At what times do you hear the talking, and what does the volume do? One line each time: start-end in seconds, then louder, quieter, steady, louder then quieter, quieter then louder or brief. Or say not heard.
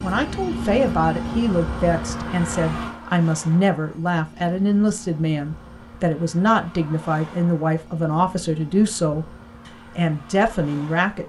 0.0-9.3 steady
9.9-11.2 brief.